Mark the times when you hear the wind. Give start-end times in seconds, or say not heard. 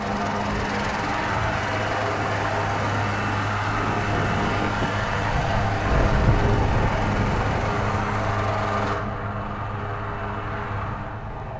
0.0-11.5.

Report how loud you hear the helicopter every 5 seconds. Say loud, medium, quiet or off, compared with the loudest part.
loud, loud, medium.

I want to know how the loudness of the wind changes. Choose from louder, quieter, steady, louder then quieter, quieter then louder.
louder then quieter.